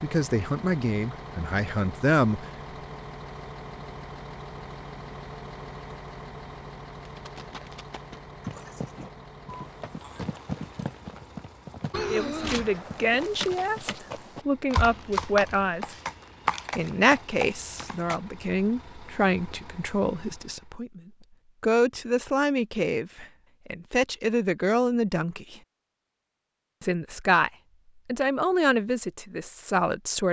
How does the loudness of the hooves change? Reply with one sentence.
The volume of the hooves goes up.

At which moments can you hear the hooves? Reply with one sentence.
You can hear the hooves from 7.0 to 18.2 s.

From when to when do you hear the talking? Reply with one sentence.
The talking can be heard from 0.0 to 2.5 s, from 12.1 to 15.9 s, from 16.8 to 21.0 s, from 21.6 to 25.6 s and from 26.8 to 30.2 s.